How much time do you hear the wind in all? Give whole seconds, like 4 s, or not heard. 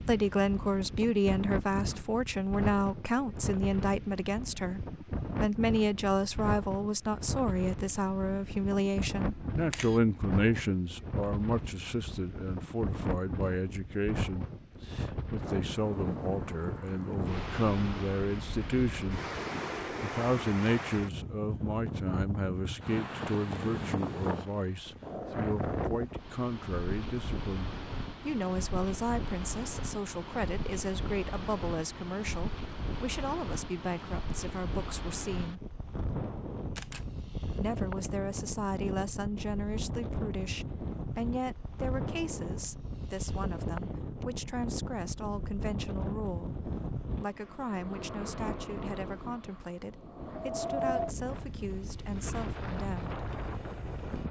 54 s.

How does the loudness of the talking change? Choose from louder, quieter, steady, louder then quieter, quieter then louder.
quieter.